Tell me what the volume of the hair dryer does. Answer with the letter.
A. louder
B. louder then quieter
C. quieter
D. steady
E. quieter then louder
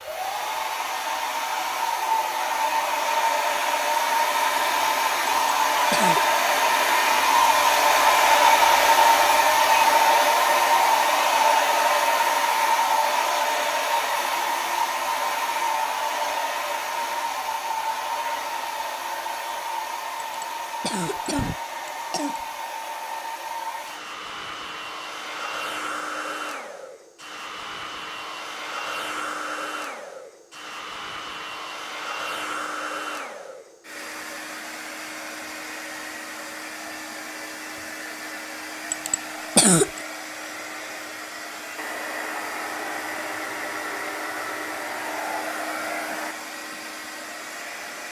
C.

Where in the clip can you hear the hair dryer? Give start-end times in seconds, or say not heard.
0.0-48.0.